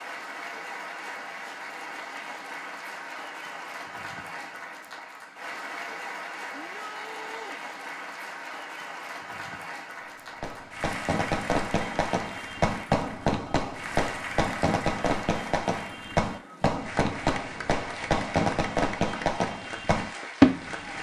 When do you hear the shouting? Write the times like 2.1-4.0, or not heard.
6.5-7.6.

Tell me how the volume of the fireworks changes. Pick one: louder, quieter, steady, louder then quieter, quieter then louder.
louder.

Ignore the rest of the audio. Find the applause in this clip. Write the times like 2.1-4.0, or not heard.
0.0-20.9.